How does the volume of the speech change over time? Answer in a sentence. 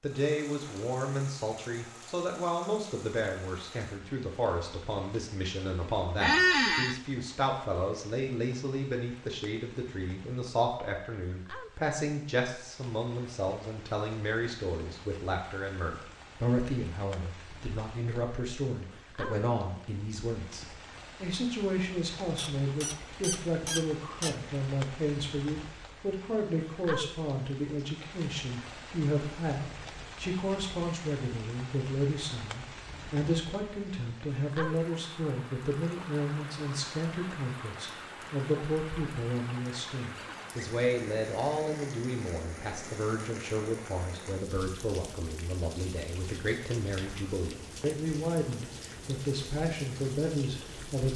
The volume of the speech stays about the same.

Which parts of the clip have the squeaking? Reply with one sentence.
You can hear the squeaking from 6.2 to 7.0 s, from 22.4 to 24.4 s and from 40.0 to 40.8 s.